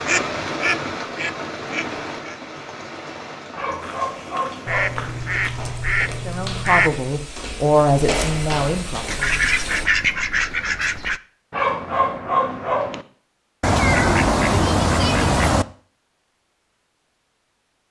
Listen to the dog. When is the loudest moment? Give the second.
12 s.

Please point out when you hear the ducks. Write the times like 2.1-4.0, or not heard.
0.1-2.4, 4.7-7.0, 9.1-11.2, 13.6-15.7.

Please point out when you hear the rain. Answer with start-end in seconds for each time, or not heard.
0.0-9.8.